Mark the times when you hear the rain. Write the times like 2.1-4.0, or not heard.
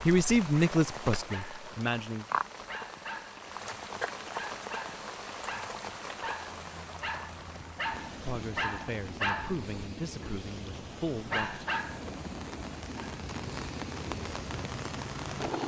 0.0-15.6.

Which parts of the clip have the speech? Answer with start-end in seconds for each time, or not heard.
0.1-2.2, 8.2-11.7.